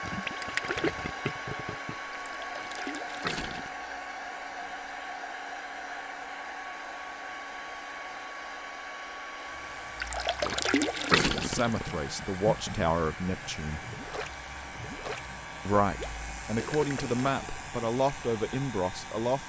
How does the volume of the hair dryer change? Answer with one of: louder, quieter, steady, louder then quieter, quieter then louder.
quieter.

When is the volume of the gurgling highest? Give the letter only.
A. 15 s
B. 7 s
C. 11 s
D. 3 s
C.